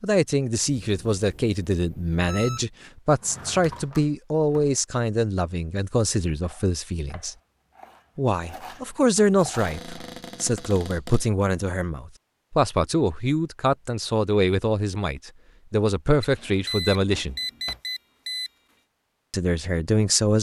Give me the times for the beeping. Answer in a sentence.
The beeping can be heard from 0.7 to 2.6 s and from 16.2 to 18.5 s.